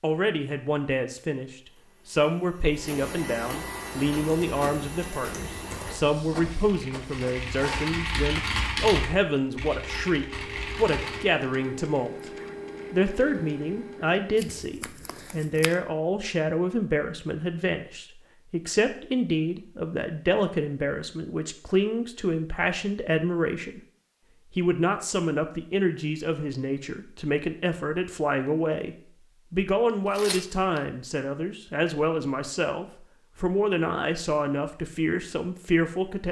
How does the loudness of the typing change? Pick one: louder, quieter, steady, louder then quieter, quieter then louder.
louder then quieter.